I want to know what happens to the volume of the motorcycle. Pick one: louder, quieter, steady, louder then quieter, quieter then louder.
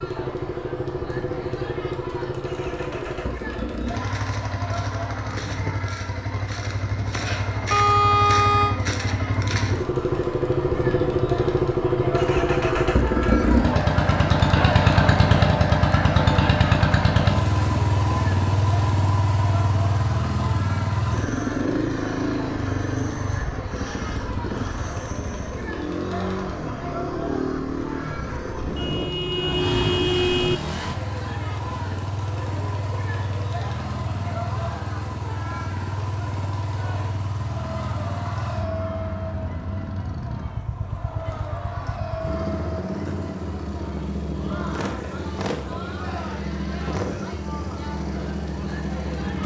louder then quieter.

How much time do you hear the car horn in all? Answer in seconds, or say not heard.
3 s.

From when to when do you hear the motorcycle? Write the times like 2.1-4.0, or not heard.
0.0-49.4.